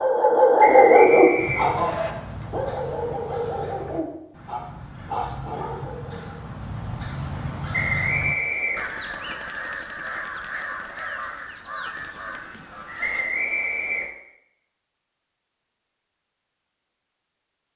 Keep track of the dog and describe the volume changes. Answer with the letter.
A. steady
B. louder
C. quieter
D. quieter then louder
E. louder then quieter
C.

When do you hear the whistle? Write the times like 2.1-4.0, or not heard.
0.6-2.1, 7.7-8.9, 13.0-14.1.